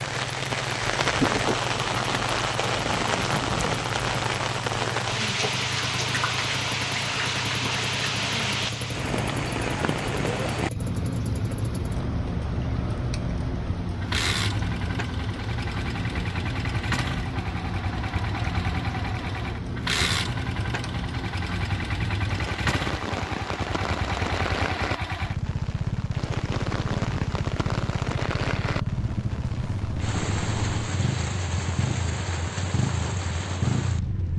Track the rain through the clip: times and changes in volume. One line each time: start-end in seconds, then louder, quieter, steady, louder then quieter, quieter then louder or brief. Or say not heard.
0.0-34.3 quieter.